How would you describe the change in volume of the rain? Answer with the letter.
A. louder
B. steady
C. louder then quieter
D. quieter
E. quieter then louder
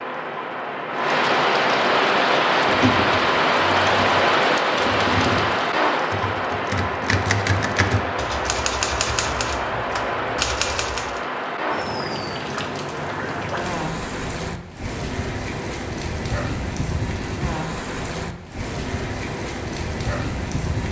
D.